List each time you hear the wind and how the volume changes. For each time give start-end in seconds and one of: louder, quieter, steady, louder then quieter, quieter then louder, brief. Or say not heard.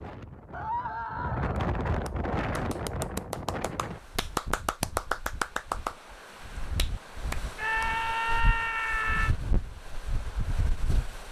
0.0-11.2 quieter then louder.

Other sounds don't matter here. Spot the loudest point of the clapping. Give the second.
5 s.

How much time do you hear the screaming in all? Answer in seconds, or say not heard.
3 s.